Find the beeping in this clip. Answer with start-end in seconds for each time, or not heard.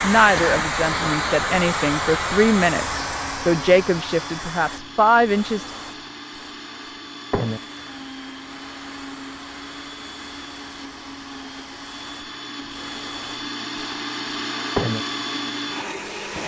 not heard.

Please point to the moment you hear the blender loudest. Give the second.
15 s.